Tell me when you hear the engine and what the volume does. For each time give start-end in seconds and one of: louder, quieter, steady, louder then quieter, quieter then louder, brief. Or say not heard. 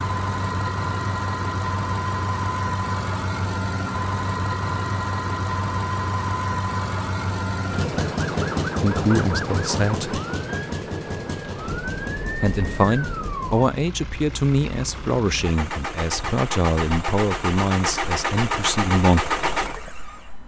0.0-20.4 quieter then louder.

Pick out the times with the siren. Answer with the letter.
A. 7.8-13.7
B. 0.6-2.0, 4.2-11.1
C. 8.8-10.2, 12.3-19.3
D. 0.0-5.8
A.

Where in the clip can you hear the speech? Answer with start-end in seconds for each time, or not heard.
8.8-10.2, 12.3-19.3.